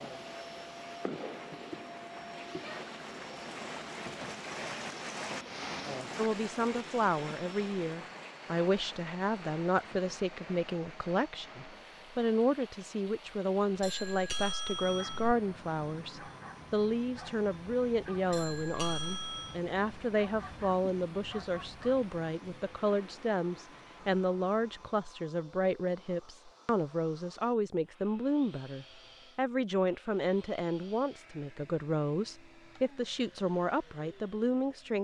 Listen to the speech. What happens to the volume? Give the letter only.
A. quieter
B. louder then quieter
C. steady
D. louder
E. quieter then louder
C.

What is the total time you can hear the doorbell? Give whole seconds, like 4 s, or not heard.
3 s.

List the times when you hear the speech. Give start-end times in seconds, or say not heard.
6.2-34.9.